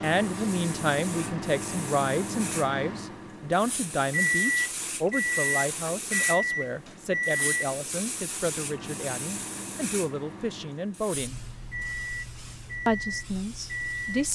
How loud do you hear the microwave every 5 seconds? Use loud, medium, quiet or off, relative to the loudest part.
loud, loud, medium.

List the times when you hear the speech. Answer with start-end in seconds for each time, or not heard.
0.0-11.4, 12.8-14.3.